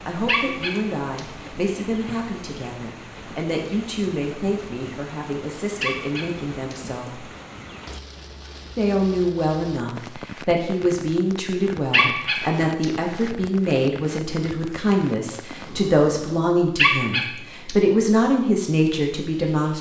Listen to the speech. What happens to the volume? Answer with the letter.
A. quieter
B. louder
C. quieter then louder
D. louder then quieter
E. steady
B.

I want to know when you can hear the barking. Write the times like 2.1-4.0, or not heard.
0.2-1.2, 5.8-6.8, 11.9-12.8, 16.8-17.8.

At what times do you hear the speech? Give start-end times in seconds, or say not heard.
0.1-7.2, 8.8-19.7.